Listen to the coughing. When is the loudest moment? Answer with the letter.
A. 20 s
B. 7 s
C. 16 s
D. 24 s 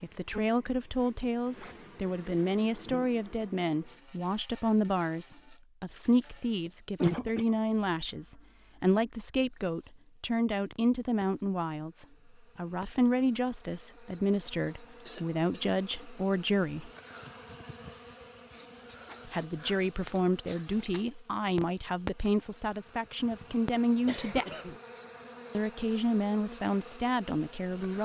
B.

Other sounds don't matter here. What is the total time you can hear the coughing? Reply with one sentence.
You can hear the coughing for 4 seconds altogether.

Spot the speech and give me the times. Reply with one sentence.
You can hear the speech from 0.0 to 16.9 s, from 19.2 to 24.4 s and from 25.5 to 28.0 s.